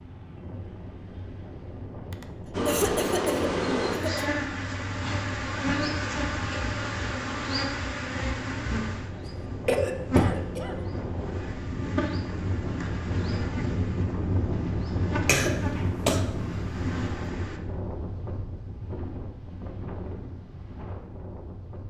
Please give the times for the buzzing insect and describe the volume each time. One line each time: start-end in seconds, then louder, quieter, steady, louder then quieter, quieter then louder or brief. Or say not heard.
2.5-17.6 quieter.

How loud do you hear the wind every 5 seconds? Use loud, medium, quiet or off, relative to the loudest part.
medium, medium, loud, loud, medium.